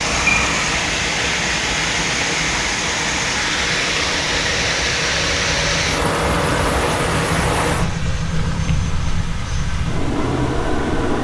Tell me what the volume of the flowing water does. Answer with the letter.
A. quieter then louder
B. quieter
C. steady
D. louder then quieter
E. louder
B.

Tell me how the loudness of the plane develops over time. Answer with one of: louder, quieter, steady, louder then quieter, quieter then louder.
louder.